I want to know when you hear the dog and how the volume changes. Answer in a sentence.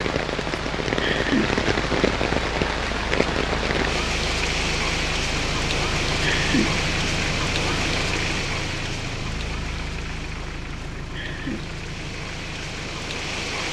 You can't hear the dog here.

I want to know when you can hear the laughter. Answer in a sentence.
You can hear the laughter from 1.0 to 1.6 s, from 6.2 to 6.8 s and from 11.2 to 11.7 s.